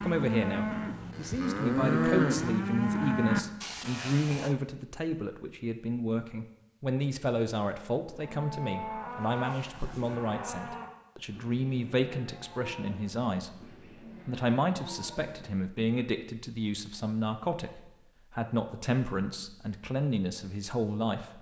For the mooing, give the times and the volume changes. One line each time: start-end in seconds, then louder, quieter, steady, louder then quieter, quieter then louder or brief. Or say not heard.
0.0-4.5 louder then quieter
8.1-16.1 quieter.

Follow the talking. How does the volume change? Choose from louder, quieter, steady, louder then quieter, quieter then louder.
steady.